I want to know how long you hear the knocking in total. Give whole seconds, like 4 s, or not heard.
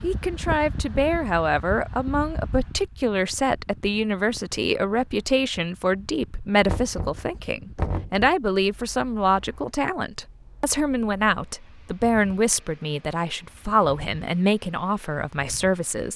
2 s.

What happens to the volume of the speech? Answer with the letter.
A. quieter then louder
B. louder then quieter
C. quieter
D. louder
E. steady
E.